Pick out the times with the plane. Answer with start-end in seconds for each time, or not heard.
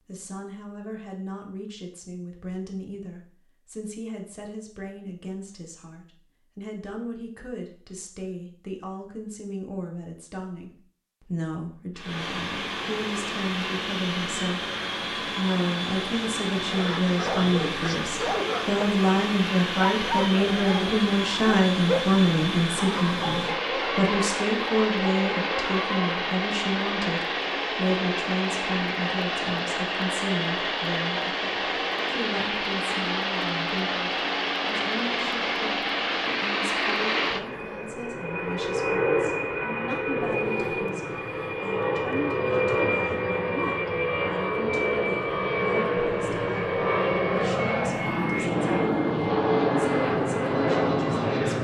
11.9-51.5.